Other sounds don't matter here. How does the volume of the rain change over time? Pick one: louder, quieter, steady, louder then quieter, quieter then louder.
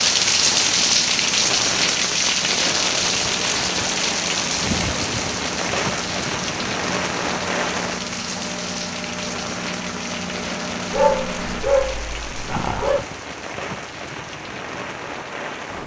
quieter.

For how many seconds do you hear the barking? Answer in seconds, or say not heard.
2 s.